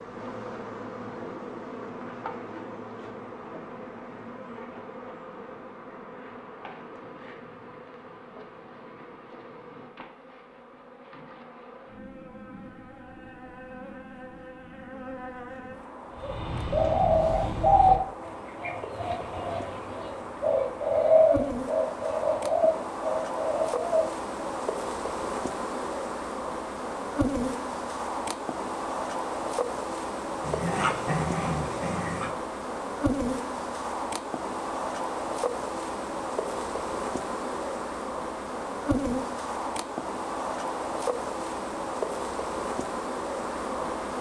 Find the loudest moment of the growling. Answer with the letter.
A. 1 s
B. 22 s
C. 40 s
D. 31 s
D.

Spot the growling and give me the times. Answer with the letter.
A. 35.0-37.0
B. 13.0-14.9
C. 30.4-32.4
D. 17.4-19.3
C.